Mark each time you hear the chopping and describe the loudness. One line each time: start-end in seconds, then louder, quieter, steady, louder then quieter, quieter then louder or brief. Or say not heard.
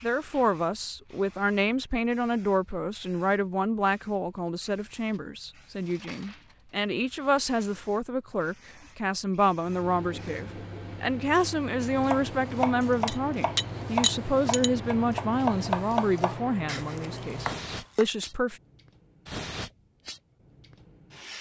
12.1-18.1 quieter.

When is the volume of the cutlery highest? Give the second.
14 s.